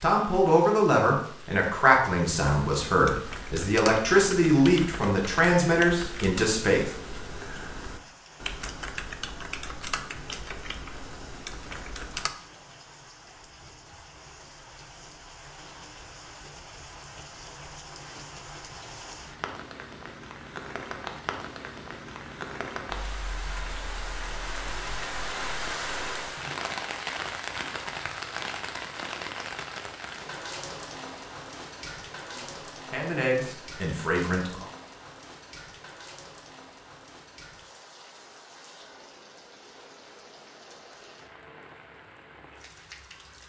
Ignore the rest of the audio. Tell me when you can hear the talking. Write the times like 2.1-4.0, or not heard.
0.0-6.9, 32.2-34.6.